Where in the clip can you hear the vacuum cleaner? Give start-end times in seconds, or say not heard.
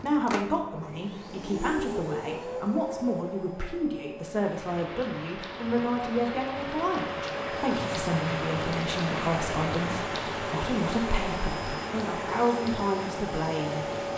0.0-14.1.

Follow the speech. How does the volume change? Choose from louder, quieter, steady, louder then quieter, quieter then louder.
steady.